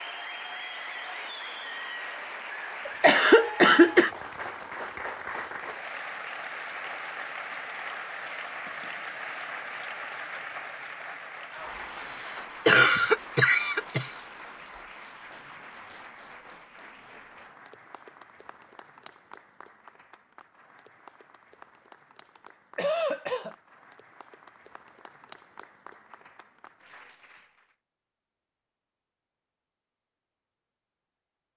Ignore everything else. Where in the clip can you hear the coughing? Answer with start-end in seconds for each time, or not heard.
2.9-4.1, 12.7-14.1, 22.4-23.6.